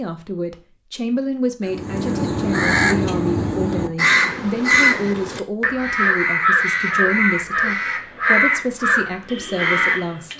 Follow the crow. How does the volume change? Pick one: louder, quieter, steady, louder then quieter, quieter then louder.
steady.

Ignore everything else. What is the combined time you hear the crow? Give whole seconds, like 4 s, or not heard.
9 s.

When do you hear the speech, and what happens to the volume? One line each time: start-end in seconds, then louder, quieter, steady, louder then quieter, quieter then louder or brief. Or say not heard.
0.0-10.3 steady.